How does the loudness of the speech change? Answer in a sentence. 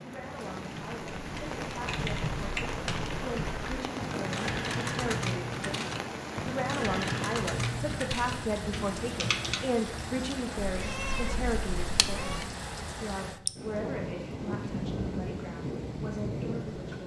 The loudness of the speech goes up, then down.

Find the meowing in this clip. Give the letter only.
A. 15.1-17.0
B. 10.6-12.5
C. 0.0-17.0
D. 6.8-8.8
B.